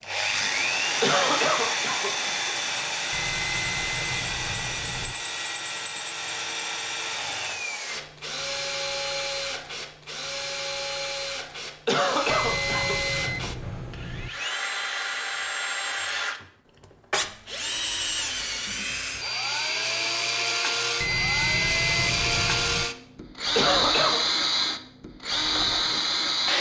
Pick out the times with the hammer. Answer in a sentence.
You can't hear the hammer here.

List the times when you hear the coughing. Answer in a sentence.
You can hear the coughing from 1.0 to 2.5 s, from 11.8 to 13.2 s and from 23.6 to 24.2 s.